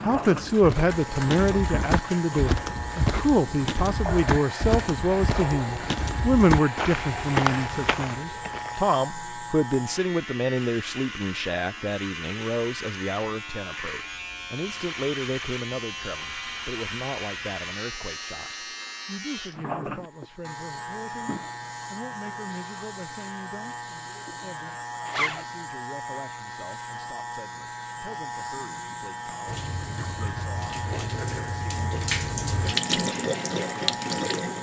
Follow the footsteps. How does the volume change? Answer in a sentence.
The volume of the footsteps stays about the same.